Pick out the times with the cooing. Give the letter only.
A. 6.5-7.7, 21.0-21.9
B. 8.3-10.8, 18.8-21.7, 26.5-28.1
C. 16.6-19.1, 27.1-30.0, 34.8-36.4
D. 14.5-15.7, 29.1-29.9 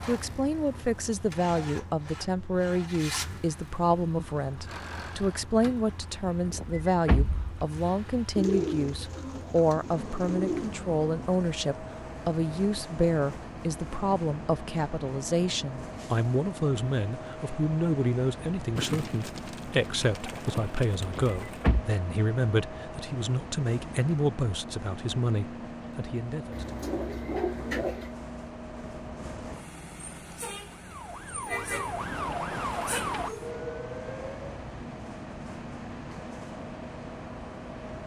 B.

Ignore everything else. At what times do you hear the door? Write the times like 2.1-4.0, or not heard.
6.5-7.7, 21.0-21.9.